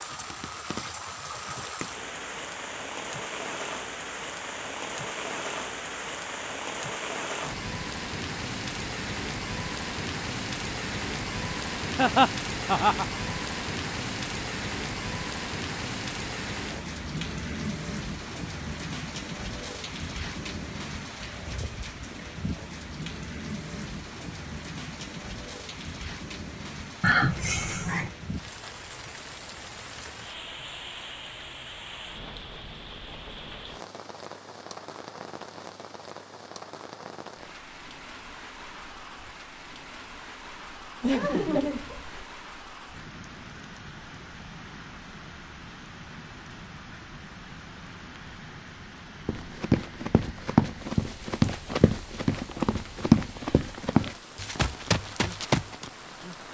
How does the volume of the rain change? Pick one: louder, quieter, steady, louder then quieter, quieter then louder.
quieter.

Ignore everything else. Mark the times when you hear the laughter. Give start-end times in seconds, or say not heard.
11.9-13.2, 27.0-28.1, 41.0-42.2.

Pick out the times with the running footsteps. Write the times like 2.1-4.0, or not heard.
49.2-55.9.